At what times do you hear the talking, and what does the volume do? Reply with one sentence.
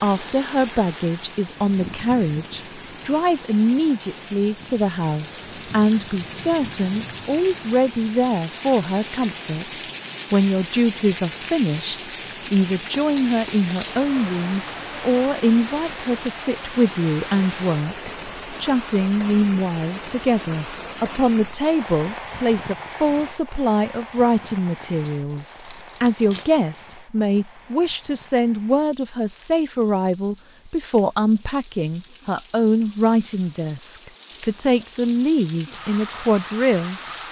You can hear the talking from 0.0 to 37.0 s, at a steady volume.